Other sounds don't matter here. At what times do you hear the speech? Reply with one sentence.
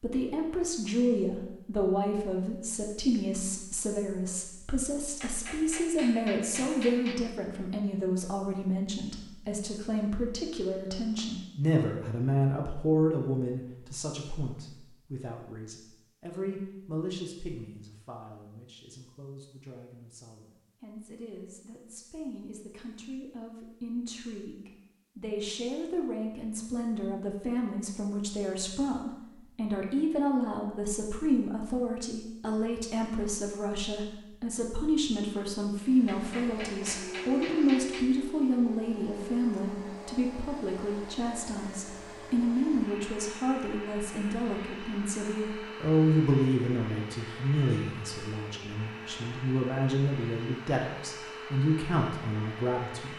You can hear the speech from 0.0 to 53.1 s.